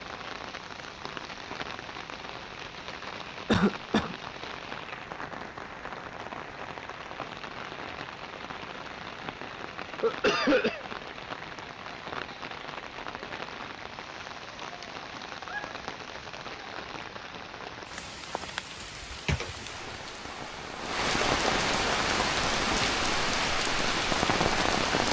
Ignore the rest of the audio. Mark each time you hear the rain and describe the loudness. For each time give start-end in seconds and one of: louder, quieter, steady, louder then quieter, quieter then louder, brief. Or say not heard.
0.0-25.0 louder.